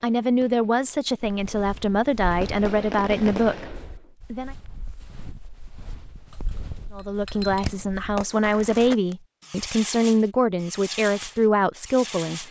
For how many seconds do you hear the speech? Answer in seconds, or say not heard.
10 s.